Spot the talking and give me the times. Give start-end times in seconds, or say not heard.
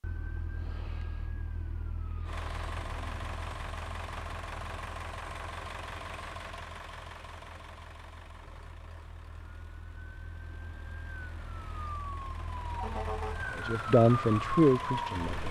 13.6-15.4.